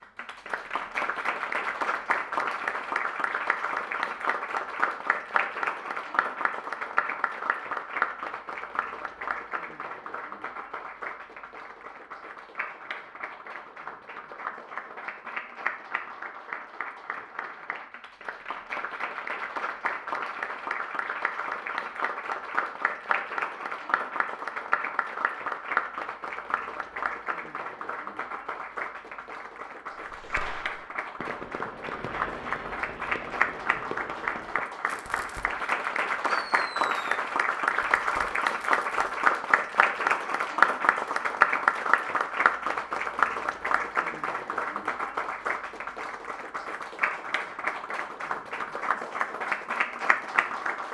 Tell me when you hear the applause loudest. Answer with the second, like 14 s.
41 s.